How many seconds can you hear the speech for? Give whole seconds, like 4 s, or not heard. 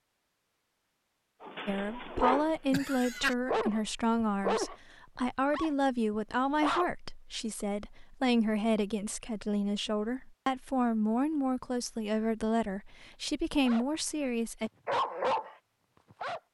13 s.